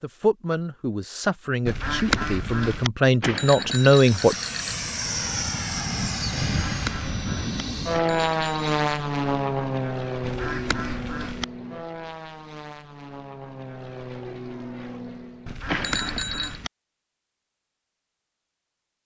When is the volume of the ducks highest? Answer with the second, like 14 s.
2 s.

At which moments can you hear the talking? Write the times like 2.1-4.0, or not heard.
0.0-4.3.